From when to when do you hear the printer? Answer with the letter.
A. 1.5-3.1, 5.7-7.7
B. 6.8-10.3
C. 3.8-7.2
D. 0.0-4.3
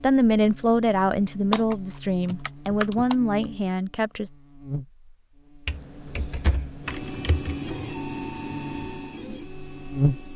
B.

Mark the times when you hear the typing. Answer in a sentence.
The typing can be heard from 1.5 to 3.1 s and from 5.7 to 7.7 s.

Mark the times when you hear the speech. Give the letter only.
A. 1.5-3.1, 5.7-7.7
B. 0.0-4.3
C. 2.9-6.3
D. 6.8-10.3
B.